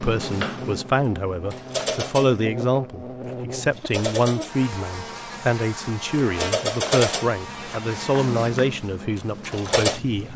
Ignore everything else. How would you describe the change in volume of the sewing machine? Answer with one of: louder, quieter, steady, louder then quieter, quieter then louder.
quieter then louder.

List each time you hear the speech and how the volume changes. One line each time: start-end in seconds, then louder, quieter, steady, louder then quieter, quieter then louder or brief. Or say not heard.
0.0-10.3 steady.